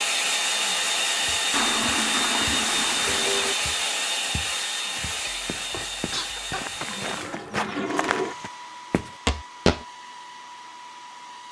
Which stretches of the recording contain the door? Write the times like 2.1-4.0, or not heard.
not heard.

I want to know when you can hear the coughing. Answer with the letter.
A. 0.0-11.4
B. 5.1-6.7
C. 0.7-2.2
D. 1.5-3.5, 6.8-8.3
B.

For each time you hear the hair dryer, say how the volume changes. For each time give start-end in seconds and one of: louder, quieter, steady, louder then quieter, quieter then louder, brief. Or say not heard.
0.0-11.4 quieter.